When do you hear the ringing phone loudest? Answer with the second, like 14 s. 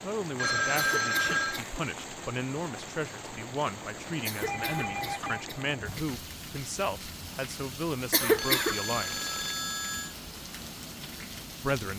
1 s.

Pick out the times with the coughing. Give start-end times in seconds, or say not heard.
0.8-1.8, 4.2-6.0, 8.1-8.8.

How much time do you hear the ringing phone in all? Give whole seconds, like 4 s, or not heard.
4 s.